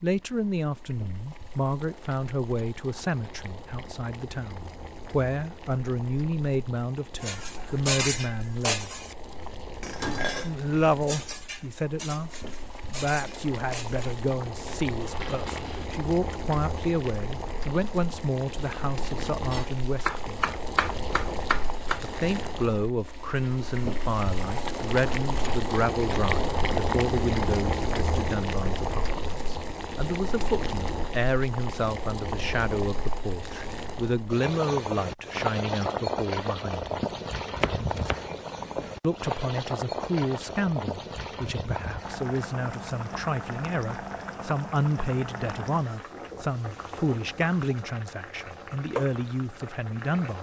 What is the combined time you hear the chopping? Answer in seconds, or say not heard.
4 s.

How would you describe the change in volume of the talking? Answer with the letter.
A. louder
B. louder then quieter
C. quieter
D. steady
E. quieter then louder
D.